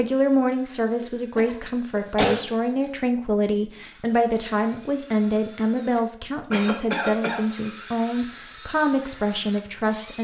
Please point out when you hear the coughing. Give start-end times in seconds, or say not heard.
1.0-2.5, 6.5-7.7.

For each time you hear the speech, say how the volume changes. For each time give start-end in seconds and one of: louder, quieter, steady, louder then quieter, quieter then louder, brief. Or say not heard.
0.0-10.1 steady.